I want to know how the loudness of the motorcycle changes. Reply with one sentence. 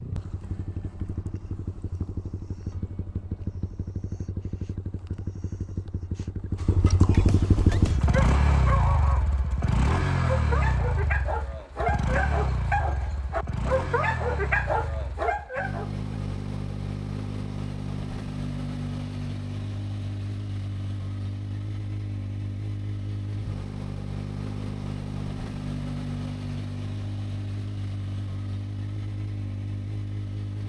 The volume of the motorcycle goes up, then down.